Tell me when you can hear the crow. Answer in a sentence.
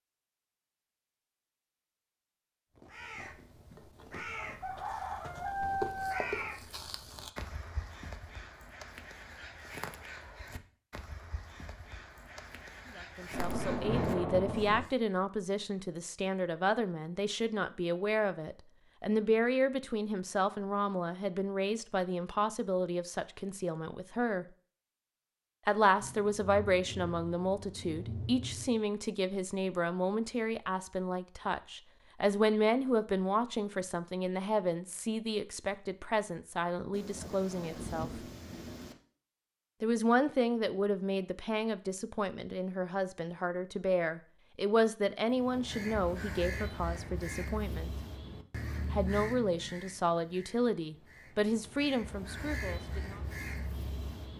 The crow can be heard from 2.8 to 14.9 s and from 45.3 to 54.3 s.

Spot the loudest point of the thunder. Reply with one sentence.
The volume of the thunder peaks at 14 seconds.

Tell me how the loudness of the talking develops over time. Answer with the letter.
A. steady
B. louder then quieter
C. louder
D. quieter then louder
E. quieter
A.